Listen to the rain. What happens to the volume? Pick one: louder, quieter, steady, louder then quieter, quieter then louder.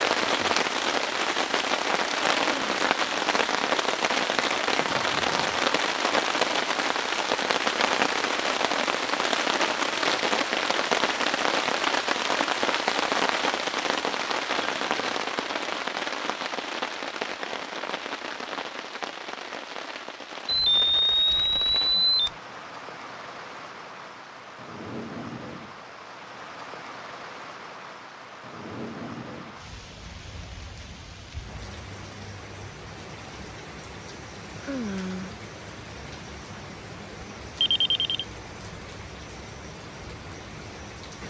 quieter.